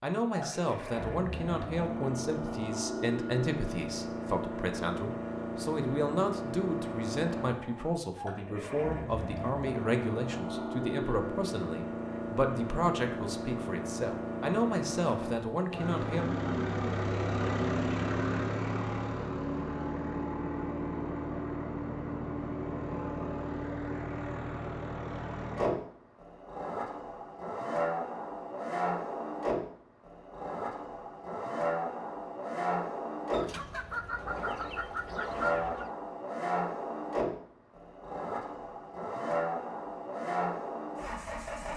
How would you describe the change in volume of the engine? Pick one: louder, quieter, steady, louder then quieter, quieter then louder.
steady.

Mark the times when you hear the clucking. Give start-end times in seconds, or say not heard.
33.3-35.9.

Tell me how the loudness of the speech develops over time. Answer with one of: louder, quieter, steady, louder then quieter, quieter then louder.
steady.